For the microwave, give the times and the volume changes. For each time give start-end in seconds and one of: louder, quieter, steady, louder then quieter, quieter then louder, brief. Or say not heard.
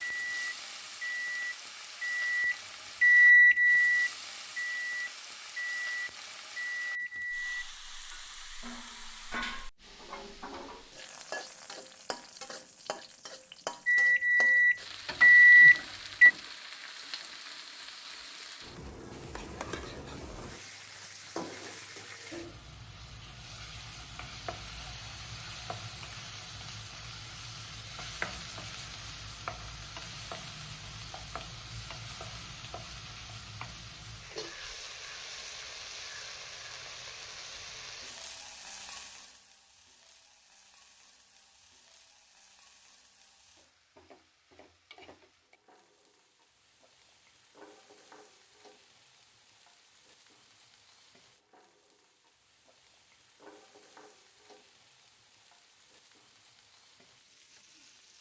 0.0-7.5 louder then quieter
13.8-16.3 brief.